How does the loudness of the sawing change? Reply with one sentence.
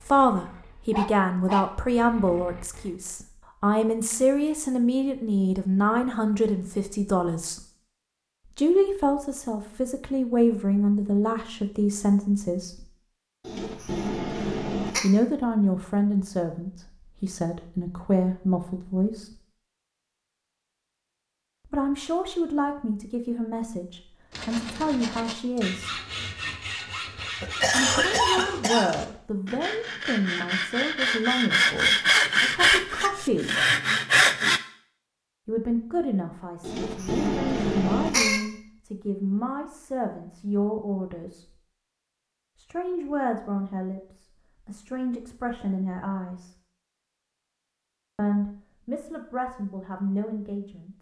The volume of the sawing goes up.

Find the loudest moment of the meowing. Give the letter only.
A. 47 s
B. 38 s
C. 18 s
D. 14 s
B.